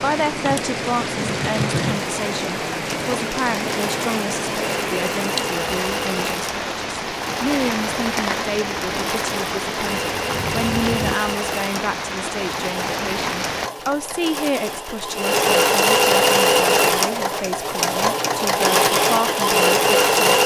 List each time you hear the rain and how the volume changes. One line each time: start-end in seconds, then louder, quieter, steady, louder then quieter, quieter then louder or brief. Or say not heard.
0.0-13.7 steady.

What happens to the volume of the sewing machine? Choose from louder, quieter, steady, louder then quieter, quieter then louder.
louder.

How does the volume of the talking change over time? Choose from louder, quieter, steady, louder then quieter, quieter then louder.
steady.